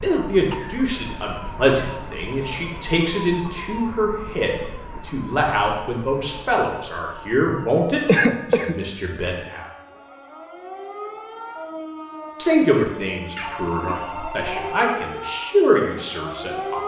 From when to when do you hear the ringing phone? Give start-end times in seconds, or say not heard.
13.4-14.9.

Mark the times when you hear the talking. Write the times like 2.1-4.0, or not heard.
0.0-9.7, 12.3-16.8.